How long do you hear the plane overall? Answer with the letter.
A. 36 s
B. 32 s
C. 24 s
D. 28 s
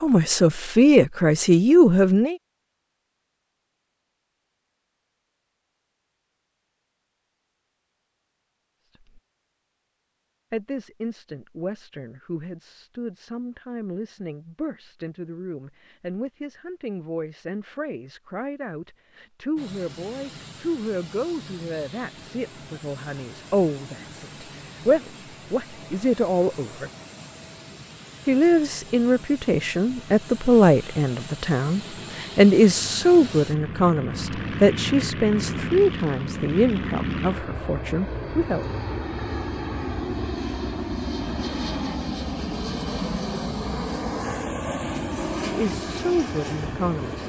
D.